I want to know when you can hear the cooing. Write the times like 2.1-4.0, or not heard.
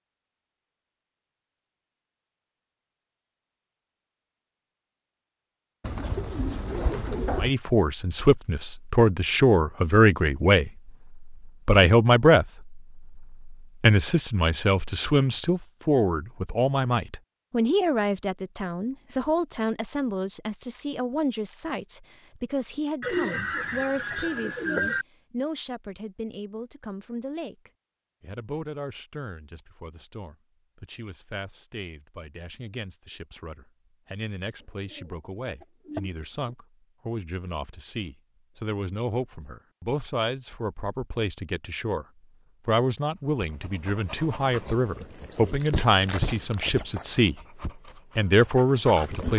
5.8-7.5, 23.0-25.1, 34.9-36.5.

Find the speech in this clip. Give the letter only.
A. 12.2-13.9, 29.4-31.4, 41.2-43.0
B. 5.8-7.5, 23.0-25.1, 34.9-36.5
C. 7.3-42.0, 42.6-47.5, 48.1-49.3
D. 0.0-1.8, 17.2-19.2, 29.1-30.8
C.